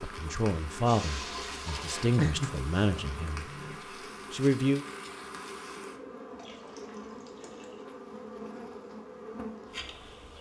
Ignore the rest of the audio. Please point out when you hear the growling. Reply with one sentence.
The growling can be heard from 2.1 to 3.8 s.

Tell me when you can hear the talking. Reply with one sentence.
You can hear the talking from 0.0 to 3.5 s and from 4.3 to 4.8 s.